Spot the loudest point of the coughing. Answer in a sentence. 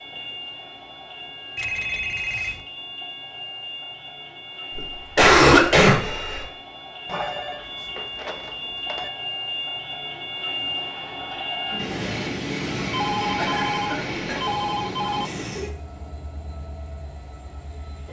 The loudest moment of the coughing is at 5 seconds.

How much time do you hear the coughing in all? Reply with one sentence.
You can hear the coughing for 3 seconds altogether.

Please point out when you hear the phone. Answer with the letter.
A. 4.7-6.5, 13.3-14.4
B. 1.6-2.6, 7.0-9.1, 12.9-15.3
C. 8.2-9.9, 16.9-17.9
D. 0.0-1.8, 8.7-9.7
B.